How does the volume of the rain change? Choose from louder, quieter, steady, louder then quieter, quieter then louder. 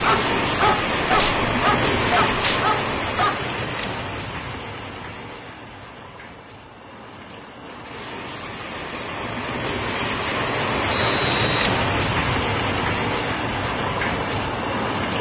quieter then louder.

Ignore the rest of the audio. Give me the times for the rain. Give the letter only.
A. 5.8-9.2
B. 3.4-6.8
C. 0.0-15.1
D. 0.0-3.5
C.